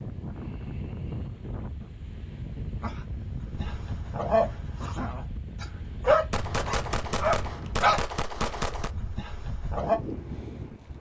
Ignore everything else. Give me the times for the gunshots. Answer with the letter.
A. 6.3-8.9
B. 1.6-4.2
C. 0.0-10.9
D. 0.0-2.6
A.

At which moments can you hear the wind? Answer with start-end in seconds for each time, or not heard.
0.0-10.9.